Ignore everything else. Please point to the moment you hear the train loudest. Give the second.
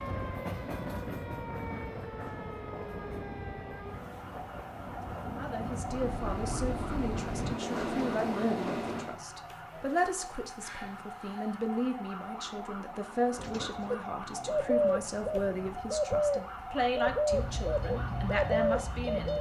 8 s.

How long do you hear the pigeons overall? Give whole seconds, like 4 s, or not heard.
6 s.